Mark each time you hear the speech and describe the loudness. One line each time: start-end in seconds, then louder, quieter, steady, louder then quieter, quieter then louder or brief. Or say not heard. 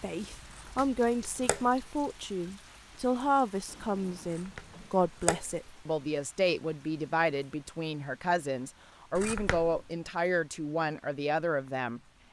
0.0-12.0 steady.